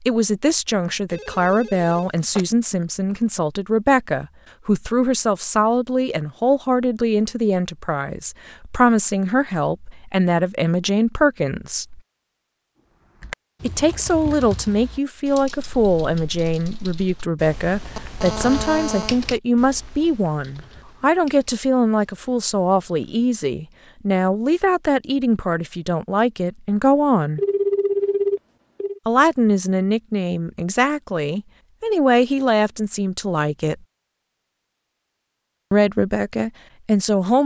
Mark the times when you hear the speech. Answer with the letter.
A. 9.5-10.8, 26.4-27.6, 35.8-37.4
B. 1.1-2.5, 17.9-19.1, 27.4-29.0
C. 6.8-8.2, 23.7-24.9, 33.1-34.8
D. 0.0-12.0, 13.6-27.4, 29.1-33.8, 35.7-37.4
D.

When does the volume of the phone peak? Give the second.
28 s.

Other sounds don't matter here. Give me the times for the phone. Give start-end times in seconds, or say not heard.
1.1-2.5, 17.9-19.1, 27.4-29.0.